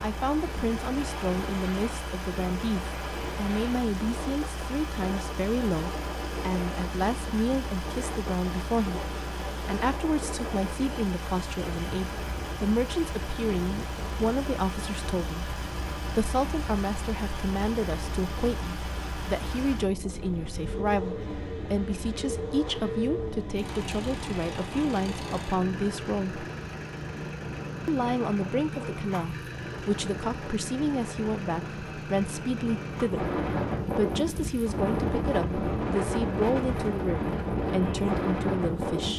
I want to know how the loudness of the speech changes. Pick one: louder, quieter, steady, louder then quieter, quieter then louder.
steady.